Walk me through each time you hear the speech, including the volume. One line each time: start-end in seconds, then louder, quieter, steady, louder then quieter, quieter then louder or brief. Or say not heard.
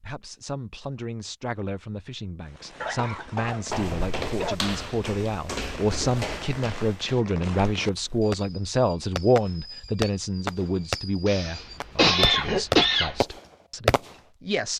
0.0-14.7 louder then quieter.